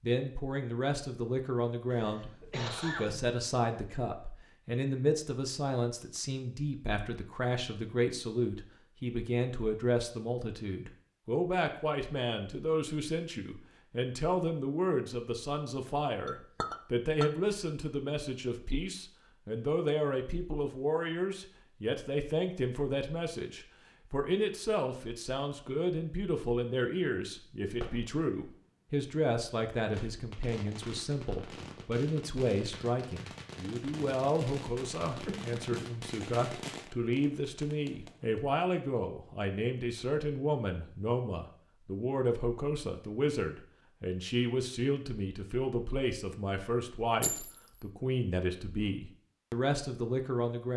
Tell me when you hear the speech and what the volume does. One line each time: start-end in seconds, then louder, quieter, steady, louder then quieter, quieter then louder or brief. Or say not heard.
0.0-50.7 steady.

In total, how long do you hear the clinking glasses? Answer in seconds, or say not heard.
2 s.